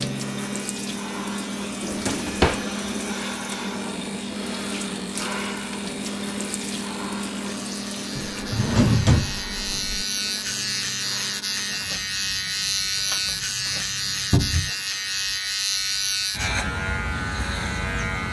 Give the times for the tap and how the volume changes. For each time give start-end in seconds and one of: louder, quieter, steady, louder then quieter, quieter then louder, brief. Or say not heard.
0.0-14.4 quieter.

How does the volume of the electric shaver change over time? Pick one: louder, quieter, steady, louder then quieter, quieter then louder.
louder.